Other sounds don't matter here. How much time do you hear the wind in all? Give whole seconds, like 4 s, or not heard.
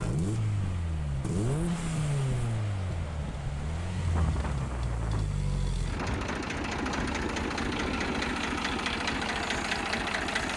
8 s.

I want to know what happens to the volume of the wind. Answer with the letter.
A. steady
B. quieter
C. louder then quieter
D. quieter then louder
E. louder
A.